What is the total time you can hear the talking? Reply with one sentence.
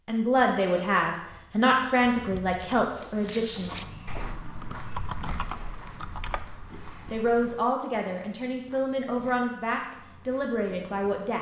You can hear the talking for 8 seconds altogether.